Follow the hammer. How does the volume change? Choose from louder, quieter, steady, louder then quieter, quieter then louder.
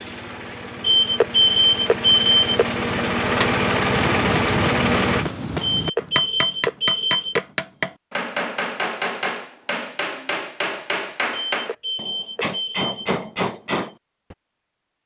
steady.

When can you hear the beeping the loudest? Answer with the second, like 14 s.
2 s.